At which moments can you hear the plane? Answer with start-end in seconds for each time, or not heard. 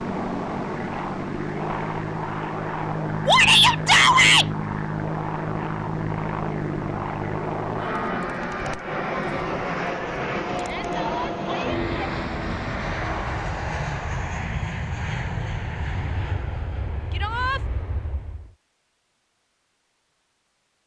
0.0-18.6.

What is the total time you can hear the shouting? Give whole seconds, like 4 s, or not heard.
3 s.